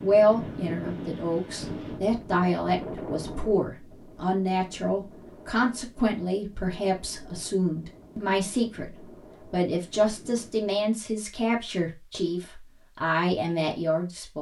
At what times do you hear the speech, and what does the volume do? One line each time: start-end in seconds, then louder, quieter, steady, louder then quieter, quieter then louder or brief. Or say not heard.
0.0-14.3 steady.